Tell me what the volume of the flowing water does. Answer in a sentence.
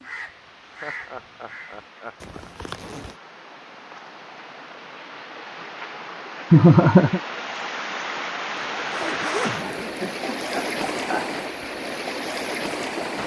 The loudness of the flowing water goes up.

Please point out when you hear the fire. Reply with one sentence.
The fire can't be heard in this clip.